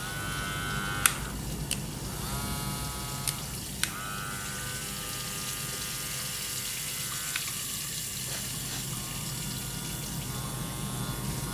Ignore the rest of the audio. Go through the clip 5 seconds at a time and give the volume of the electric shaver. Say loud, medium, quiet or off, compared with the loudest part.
loud, medium, loud.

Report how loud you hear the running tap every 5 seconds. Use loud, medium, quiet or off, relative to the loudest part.
medium, loud, medium.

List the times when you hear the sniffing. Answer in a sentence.
You can hear the sniffing from 8.2 to 8.9 s.